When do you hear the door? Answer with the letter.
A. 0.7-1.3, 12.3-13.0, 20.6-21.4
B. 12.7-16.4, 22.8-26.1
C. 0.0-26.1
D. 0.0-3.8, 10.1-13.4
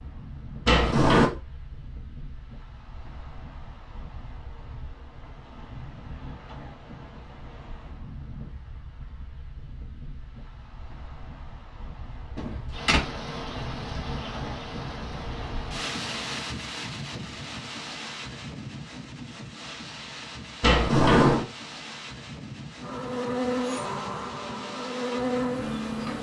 A.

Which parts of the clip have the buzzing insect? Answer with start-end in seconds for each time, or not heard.
12.7-16.4, 22.8-26.1.